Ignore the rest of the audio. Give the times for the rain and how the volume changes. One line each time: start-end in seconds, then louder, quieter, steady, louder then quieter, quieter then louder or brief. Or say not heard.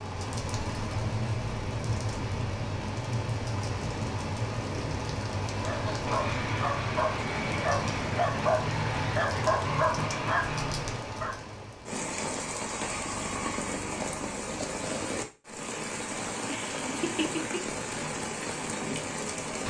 0.0-19.6 steady.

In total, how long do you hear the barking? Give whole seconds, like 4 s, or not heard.
6 s.